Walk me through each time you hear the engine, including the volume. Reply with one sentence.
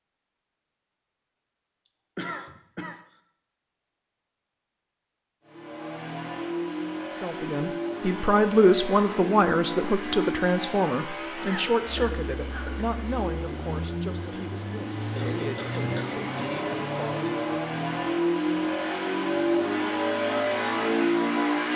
The engine can be heard from 5.5 to 21.7 s, getting louder.